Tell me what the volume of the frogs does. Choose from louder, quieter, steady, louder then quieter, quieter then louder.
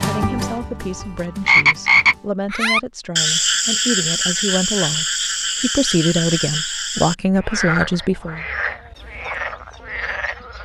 quieter.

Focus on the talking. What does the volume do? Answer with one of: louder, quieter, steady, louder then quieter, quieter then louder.
louder.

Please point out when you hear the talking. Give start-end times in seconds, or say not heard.
0.0-8.4.